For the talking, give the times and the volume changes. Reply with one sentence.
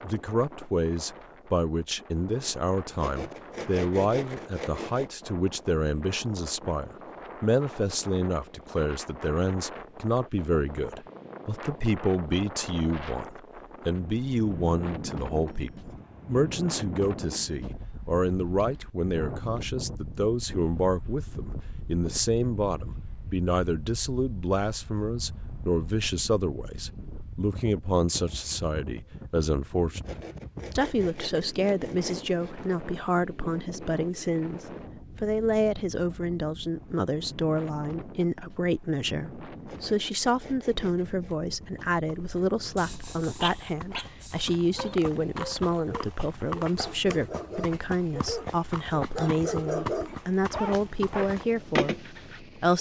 You can hear the talking from 0.0 to 52.7 s, at a steady volume.